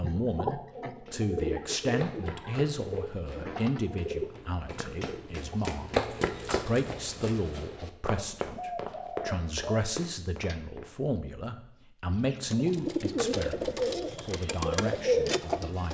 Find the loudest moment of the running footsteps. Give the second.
6 s.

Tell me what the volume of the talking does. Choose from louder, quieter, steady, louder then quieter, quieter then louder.
steady.